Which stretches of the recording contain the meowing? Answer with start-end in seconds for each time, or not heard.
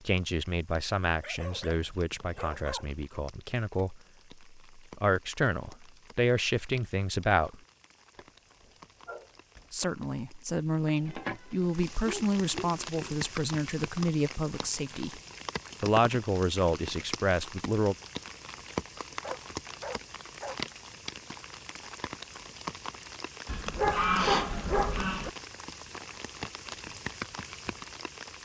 10.8-12.1.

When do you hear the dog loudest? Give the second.
24 s.